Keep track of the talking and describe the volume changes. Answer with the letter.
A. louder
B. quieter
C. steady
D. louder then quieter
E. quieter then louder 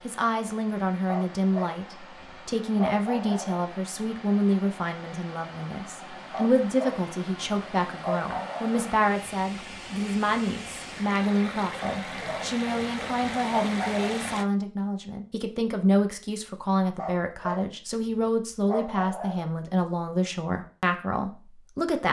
C.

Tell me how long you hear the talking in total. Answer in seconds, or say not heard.
22 s.